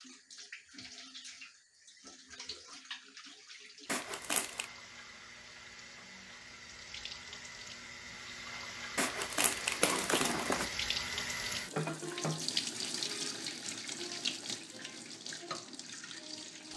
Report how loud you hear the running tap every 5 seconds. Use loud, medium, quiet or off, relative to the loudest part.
quiet, medium, loud, medium.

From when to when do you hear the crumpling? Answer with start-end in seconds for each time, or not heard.
3.9-4.7, 8.9-10.7.